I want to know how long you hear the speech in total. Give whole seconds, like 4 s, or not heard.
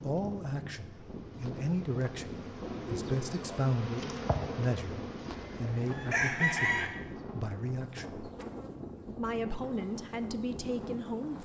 11 s.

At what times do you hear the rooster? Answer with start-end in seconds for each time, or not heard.
5.3-6.9.